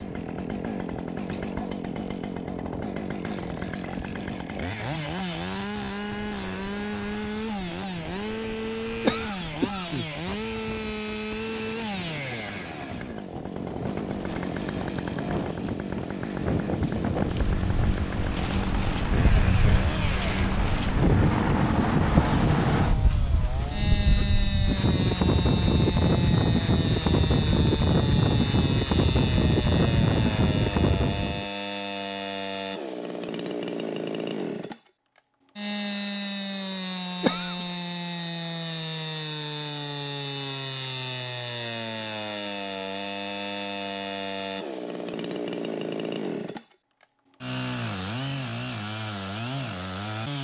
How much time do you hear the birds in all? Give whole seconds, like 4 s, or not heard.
not heard.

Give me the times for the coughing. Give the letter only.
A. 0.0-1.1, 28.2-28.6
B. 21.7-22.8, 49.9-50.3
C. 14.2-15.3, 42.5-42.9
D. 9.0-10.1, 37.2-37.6
D.